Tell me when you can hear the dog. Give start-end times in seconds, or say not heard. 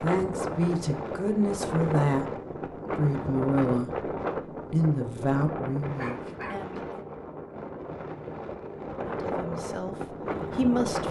6.0-7.0.